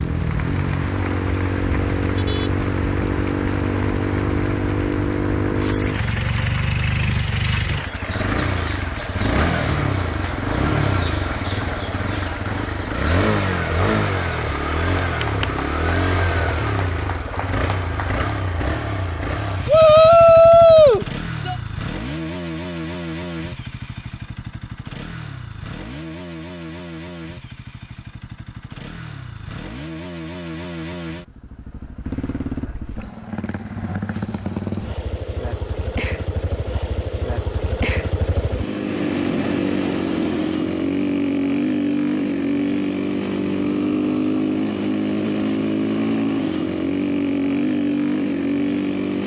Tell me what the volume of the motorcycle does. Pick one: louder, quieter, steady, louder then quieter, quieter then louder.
quieter then louder.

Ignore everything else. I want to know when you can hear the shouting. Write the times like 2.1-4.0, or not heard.
19.6-21.6.